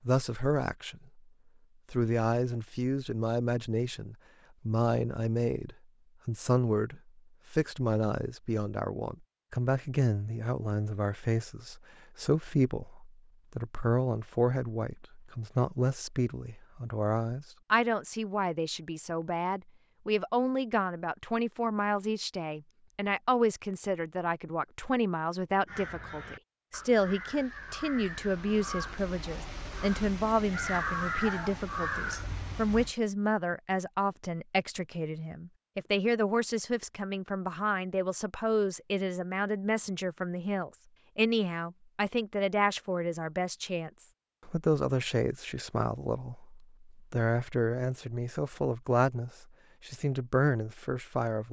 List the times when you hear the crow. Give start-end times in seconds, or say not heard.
25.6-33.0.